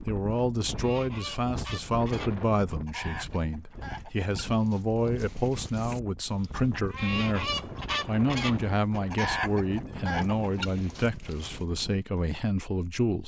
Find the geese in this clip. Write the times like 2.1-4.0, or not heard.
0.8-11.6.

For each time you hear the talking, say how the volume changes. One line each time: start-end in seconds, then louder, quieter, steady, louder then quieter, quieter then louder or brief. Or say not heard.
0.0-13.2 steady.